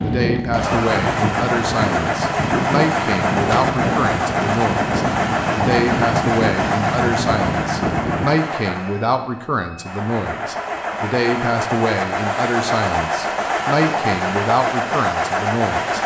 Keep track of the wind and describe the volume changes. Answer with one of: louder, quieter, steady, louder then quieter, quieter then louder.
steady.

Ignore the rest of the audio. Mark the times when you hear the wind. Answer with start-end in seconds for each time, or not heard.
0.0-8.4.